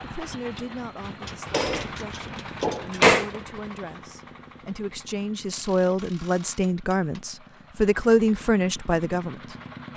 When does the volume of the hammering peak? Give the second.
3 s.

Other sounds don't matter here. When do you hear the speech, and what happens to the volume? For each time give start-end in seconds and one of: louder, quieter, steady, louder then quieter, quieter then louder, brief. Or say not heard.
0.0-9.6 louder.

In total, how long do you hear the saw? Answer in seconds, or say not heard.
not heard.